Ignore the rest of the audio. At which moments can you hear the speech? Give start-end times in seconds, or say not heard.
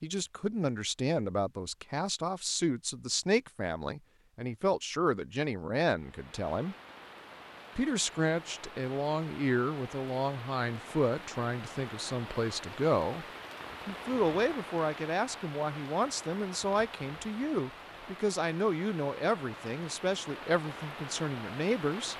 0.0-6.8, 7.8-13.2, 13.8-22.1.